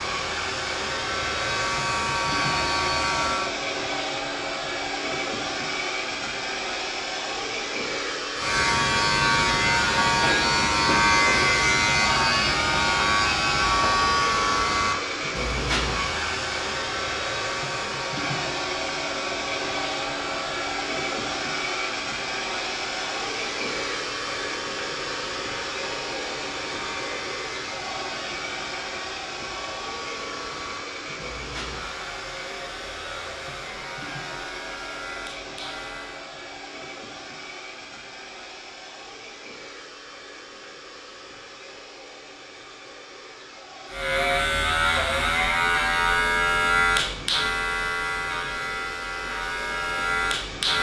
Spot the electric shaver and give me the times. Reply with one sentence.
You can hear the electric shaver from 0.0 to 3.5 s, from 8.3 to 36.2 s and from 43.9 to 50.7 s.